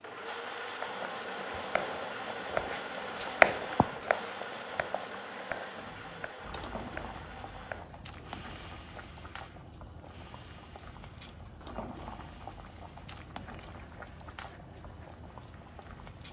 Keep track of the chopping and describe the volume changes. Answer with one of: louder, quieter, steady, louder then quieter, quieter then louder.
louder then quieter.